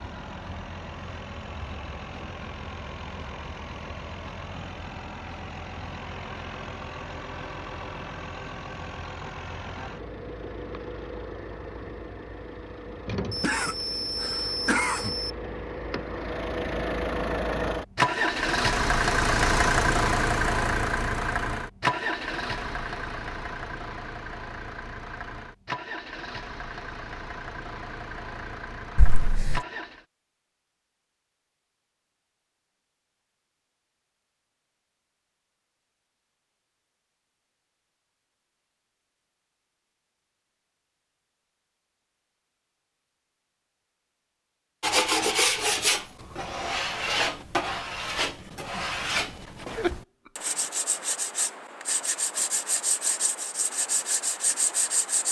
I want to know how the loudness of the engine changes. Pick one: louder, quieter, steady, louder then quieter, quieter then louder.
louder then quieter.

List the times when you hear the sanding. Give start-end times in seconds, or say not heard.
44.8-55.2.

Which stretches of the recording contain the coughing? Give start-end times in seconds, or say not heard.
13.3-15.3, 28.9-29.6, 49.6-50.5.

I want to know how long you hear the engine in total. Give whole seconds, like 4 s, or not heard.
30 s.